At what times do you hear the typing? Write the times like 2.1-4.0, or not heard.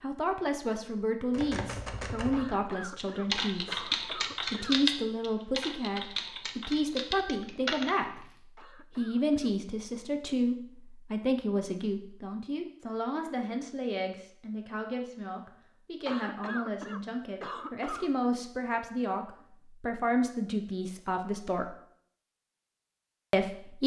1.3-8.2.